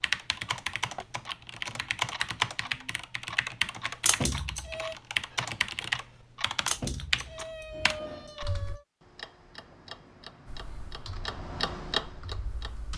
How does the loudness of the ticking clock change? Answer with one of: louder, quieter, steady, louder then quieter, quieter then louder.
louder.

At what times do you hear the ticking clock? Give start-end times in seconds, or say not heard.
0.0-12.9.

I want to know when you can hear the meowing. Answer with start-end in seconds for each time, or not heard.
4.0-5.0, 6.7-8.8.